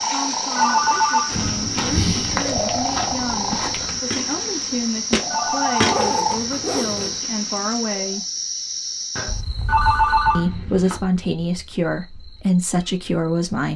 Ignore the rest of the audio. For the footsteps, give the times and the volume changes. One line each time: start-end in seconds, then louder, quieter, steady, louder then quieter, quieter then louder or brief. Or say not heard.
1.2-6.3 quieter then louder.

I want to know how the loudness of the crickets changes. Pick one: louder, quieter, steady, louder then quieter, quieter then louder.
quieter.